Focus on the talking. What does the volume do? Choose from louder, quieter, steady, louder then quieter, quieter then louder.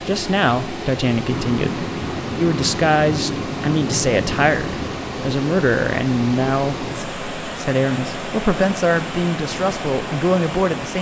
steady.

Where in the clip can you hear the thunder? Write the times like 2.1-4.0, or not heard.
1.2-5.0.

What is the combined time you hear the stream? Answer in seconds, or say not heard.
11 s.